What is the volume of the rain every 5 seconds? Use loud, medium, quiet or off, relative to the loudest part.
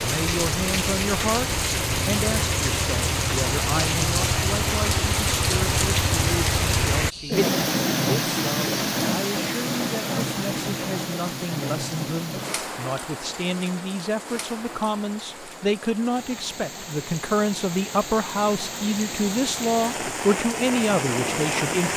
loud, loud, medium, medium, loud.